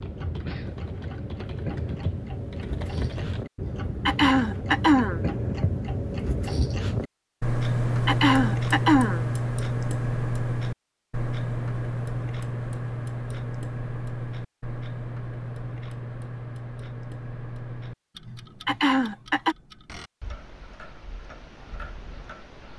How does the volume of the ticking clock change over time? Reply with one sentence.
The volume of the ticking clock goes up, then down.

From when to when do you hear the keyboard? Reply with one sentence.
The keyboard can be heard from 0.0 to 3.5 s.